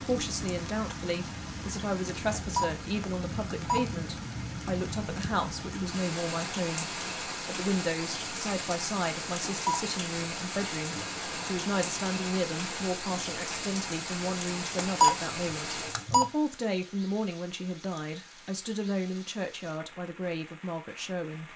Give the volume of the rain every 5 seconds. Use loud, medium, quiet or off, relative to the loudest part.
loud, loud, loud, medium, quiet.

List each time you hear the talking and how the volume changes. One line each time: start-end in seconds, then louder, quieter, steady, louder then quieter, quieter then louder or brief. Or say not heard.
0.0-21.5 steady.